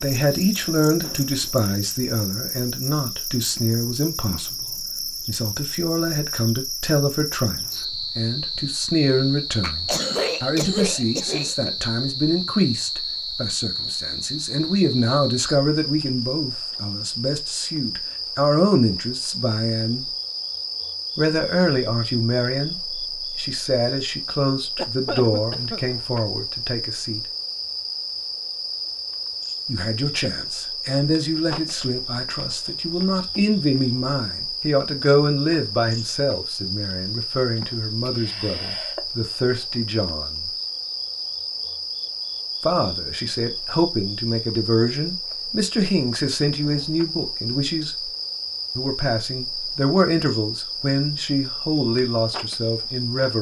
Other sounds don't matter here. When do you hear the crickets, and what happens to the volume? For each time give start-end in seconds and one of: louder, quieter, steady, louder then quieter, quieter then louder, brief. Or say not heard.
0.0-53.3 steady.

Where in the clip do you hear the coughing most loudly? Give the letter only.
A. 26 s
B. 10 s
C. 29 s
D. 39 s
B.